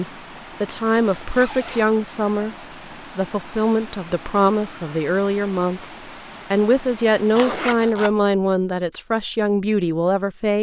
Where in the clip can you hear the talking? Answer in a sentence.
The talking can be heard from 0.0 to 2.5 s and from 3.1 to 10.5 s.